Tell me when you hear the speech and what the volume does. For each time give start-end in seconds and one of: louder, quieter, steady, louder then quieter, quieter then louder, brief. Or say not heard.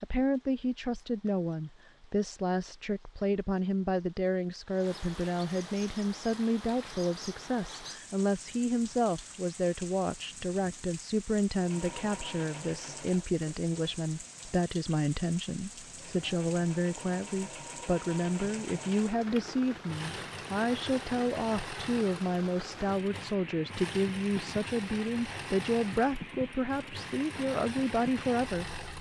0.0-28.6 steady.